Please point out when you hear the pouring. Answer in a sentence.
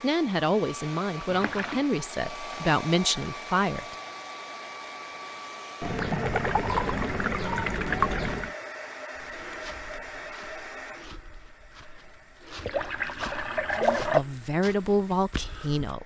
You can hear the pouring from 1.3 to 1.9 s, from 5.8 to 8.6 s and from 12.6 to 14.2 s.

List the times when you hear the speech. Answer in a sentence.
You can hear the speech from 0.0 to 4.0 s and from 13.8 to 16.0 s.